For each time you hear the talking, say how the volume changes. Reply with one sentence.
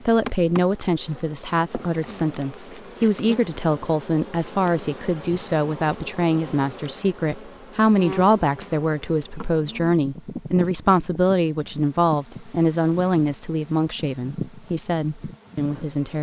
The talking can be heard from 0.0 to 16.1 s, at a steady volume.